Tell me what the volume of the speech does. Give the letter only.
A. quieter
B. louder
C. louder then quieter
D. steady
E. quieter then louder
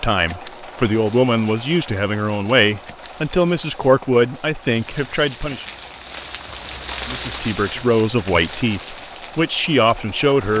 D.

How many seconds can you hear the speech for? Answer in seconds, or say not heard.
9 s.